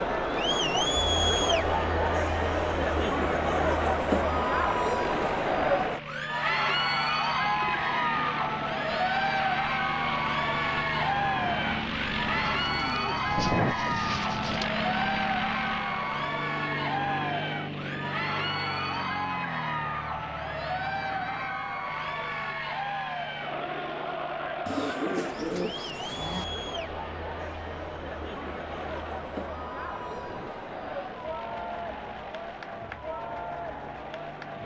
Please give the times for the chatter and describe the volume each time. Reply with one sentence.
You can hear the chatter from 0.0 to 34.6 s, getting quieter.